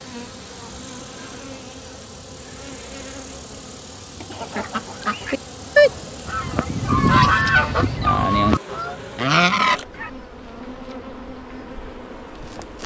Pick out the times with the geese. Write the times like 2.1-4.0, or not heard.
4.3-10.1.